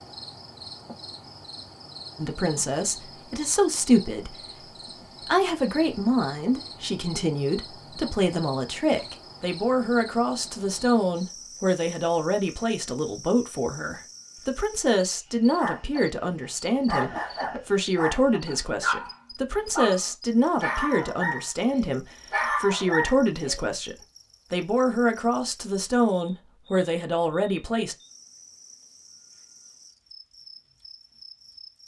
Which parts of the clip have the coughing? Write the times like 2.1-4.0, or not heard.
17.0-17.6.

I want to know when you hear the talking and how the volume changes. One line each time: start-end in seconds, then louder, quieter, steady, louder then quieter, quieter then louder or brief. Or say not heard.
2.1-27.9 steady.